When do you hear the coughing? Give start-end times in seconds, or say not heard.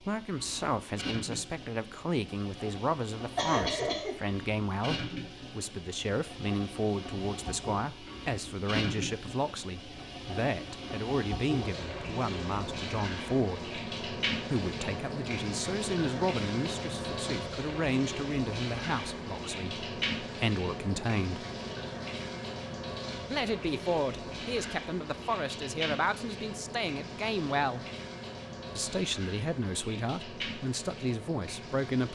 3.4-4.2.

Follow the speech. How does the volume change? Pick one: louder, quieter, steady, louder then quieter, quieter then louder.
steady.